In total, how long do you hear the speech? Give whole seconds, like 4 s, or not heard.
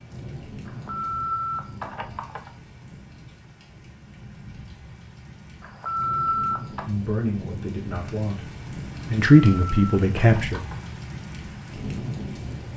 4 s.